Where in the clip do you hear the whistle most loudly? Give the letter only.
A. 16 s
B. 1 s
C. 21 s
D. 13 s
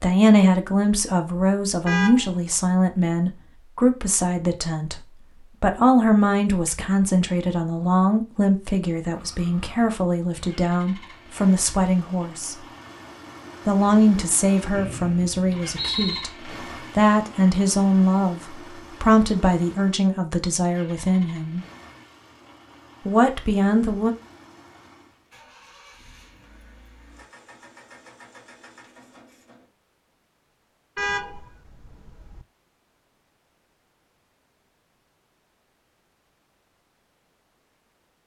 A.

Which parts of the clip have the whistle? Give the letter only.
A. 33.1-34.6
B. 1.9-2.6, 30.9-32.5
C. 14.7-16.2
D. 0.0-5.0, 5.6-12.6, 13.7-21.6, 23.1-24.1
C.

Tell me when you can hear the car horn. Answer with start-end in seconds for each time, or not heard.
1.9-2.6, 30.9-32.5.